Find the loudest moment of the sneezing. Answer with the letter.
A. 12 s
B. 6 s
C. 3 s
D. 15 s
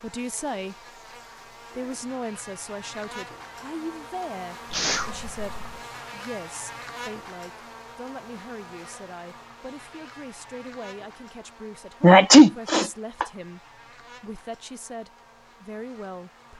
A.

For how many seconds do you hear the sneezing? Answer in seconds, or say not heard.
2 s.